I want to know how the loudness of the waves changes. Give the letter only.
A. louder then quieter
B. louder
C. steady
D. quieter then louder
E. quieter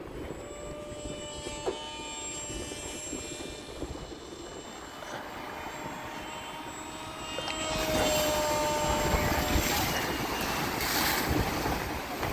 B.